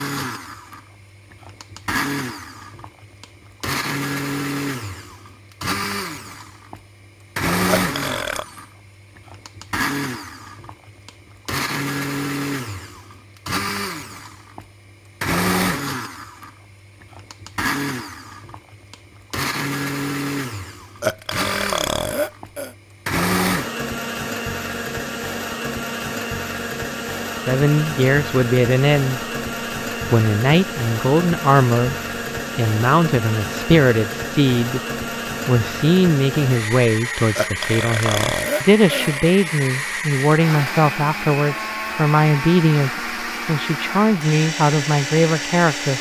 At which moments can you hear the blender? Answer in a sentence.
You can hear the blender from 0.0 to 45.9 s.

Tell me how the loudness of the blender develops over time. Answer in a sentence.
The volume of the blender stays about the same.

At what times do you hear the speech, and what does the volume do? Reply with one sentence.
The speech can be heard briefly from 27.4 to 29.2 s; briefly from 30.1 to 31.9 s; briefly from 32.5 to 34.8 s; and from 35.5 to 45.9 s, at a steady volume.